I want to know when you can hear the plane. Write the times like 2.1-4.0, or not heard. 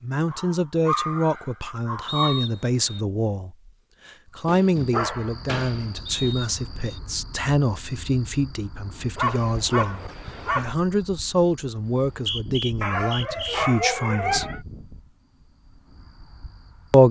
not heard.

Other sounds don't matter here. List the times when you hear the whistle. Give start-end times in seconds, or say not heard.
2.0-3.0, 6.0-7.0, 11.8-13.6.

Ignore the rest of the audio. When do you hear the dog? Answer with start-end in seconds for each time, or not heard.
0.3-2.5, 4.5-6.3, 9.2-10.8, 12.8-14.6.